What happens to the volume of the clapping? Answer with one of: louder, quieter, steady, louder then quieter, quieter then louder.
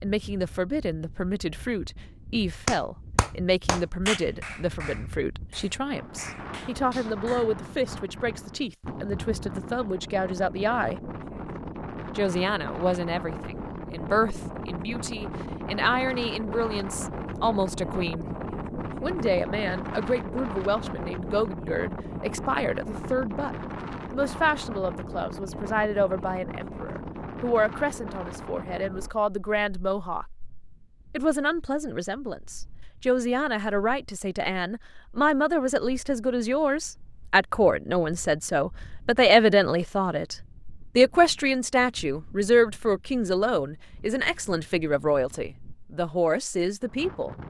quieter.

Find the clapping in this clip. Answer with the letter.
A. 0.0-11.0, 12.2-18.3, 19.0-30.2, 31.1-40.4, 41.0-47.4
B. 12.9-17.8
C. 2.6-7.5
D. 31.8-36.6
C.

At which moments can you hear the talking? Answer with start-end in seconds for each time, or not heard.
0.0-11.0, 12.2-18.3, 19.0-30.2, 31.1-40.4, 41.0-47.4.